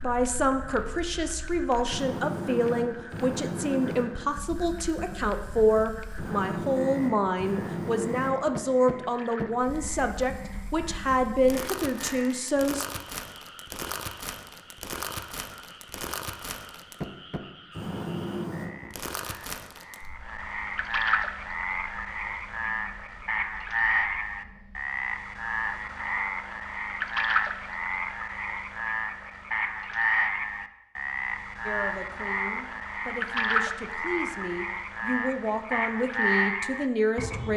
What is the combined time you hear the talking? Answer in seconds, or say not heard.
19 s.